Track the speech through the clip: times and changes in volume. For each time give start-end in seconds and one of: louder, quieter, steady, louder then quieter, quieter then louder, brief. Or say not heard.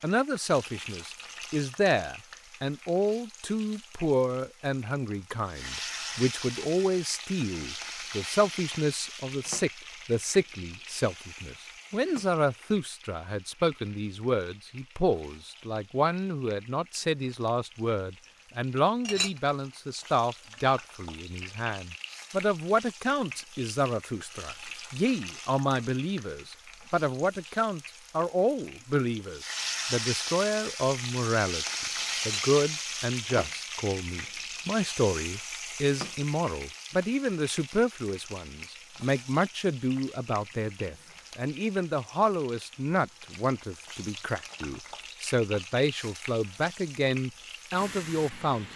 0.0-31.6 steady
32.2-48.7 steady.